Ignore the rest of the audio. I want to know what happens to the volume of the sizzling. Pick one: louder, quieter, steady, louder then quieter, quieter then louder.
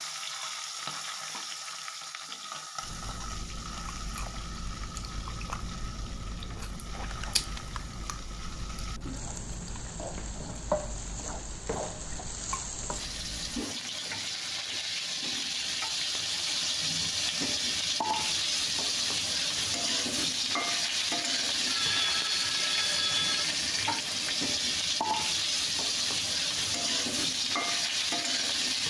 louder.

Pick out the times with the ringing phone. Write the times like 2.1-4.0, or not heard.
7.1-8.0, 21.6-23.5.